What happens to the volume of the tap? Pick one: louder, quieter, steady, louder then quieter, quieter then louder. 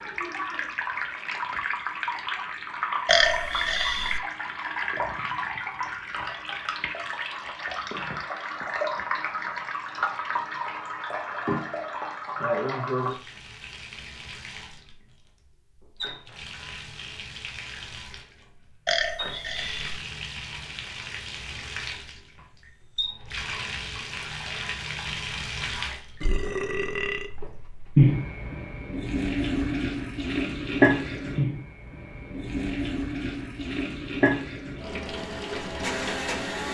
quieter then louder.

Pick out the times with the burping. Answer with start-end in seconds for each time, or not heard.
3.0-4.2, 18.9-19.9, 26.2-27.3.